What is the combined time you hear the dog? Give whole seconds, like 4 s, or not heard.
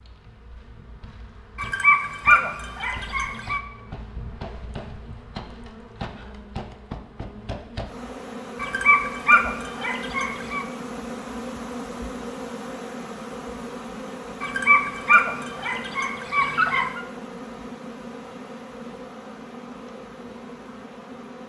7 s.